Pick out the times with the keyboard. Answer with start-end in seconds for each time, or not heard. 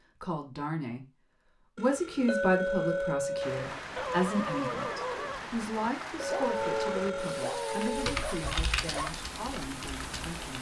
7.8-10.5.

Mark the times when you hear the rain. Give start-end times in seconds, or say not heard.
3.4-10.5.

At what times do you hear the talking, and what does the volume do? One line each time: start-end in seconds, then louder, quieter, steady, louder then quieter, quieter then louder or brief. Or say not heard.
0.0-1.1 brief
1.8-10.5 quieter.